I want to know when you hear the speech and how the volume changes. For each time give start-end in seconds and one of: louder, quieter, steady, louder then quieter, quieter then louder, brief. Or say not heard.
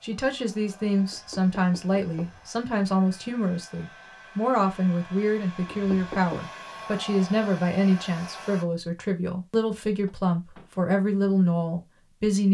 0.0-12.4 steady.